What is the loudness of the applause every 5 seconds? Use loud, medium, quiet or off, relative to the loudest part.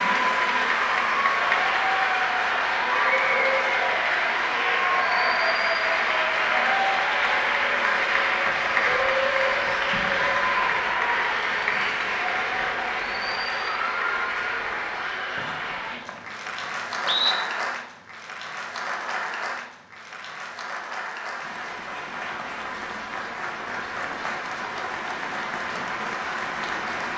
loud, loud, loud, medium, medium, medium.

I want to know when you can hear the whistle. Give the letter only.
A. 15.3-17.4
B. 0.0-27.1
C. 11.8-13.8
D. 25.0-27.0
A.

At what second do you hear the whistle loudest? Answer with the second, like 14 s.
17 s.